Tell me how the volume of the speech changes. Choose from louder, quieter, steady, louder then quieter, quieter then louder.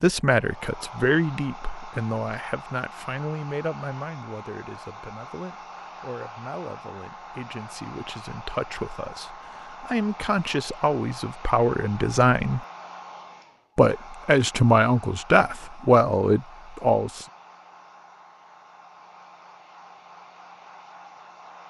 quieter then louder.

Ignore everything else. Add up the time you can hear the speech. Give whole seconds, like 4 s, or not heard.
16 s.